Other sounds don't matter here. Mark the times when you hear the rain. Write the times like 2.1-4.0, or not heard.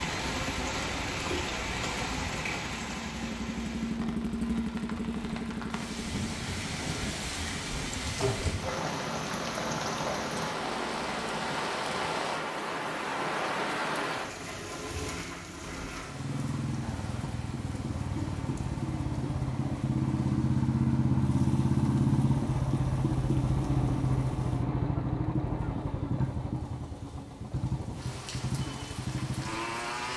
0.0-30.1.